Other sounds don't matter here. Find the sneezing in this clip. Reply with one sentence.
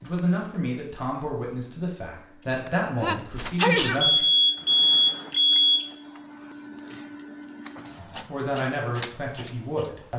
The sneezing can be heard from 3.0 to 4.0 s.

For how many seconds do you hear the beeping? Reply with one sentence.
The beeping can be heard for 2 seconds in total.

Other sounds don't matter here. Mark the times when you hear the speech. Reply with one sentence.
The speech can be heard from 0.0 to 4.2 s and from 8.0 to 10.1 s.